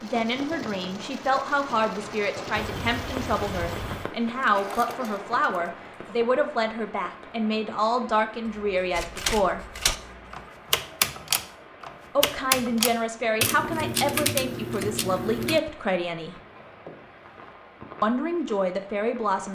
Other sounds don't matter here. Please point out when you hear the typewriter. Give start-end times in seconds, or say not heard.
8.9-15.6.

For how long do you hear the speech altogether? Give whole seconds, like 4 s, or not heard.
15 s.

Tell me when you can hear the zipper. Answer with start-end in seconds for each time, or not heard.
not heard.